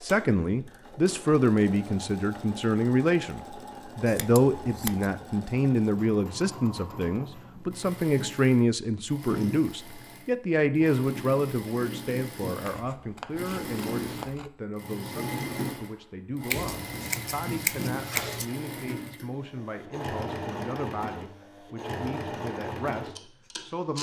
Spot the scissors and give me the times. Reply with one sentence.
The scissors can be heard from 4.0 to 5.1 s, from 12.6 to 14.5 s and from 16.5 to 18.4 s.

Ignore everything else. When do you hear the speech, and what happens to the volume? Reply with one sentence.
You can hear the speech from 0.0 to 23.9 s, getting quieter.